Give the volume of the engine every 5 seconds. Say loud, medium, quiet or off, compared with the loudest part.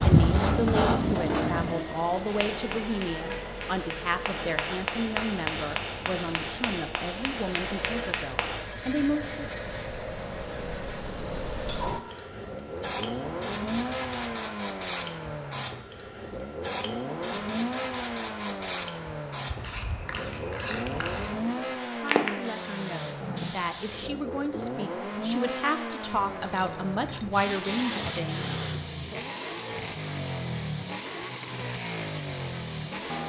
loud, medium, loud, loud, loud, loud, loud.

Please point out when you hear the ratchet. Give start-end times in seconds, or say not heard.
0.0-1.8, 12.3-14.4, 26.1-27.3.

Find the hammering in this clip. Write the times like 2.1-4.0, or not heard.
2.2-8.7.